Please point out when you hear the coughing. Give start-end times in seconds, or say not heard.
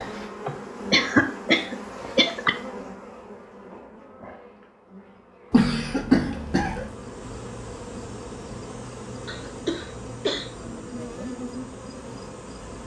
0.5-2.5, 5.5-6.9, 9.2-10.4.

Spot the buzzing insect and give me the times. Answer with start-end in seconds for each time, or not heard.
0.0-12.8.